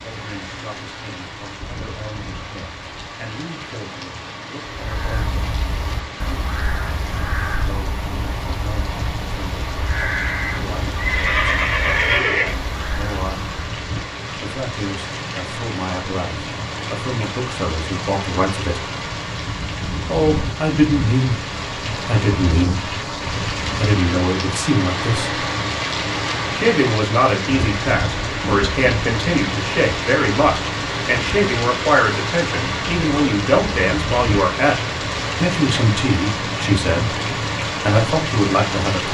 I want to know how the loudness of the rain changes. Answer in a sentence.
The loudness of the rain goes up.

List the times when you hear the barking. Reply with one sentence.
You can't hear the barking here.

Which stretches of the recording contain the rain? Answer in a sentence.
You can hear the rain from 0.0 to 39.1 s.